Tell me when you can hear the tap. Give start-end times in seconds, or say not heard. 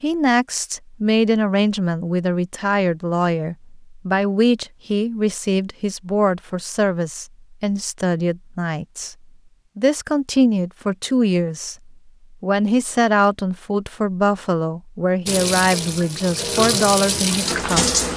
15.2-18.1.